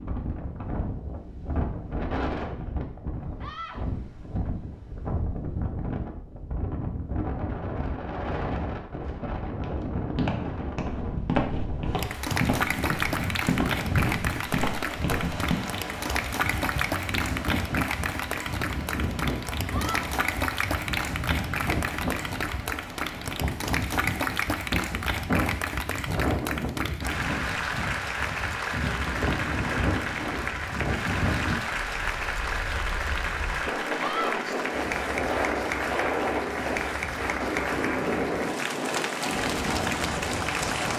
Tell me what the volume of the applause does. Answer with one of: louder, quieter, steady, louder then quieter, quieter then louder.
steady.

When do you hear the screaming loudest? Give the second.
34 s.